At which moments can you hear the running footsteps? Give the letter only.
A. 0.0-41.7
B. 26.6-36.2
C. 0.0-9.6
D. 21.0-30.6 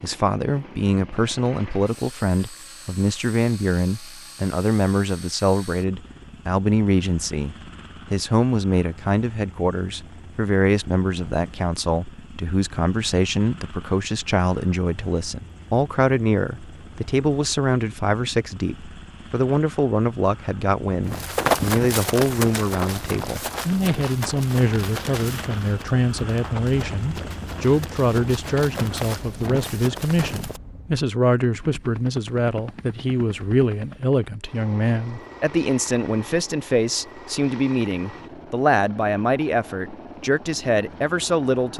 D.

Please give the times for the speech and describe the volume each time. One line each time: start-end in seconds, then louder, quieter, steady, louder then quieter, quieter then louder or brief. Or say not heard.
0.0-41.7 steady.